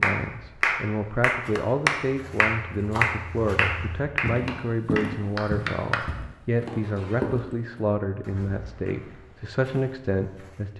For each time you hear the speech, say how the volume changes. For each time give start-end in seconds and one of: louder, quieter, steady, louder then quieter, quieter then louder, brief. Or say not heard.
0.0-10.7 steady.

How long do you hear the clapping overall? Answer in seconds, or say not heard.
6 s.